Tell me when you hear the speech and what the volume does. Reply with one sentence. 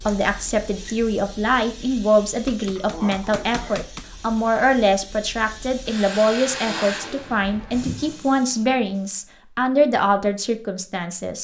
You can hear the speech from 0.1 to 11.3 s, at a steady volume.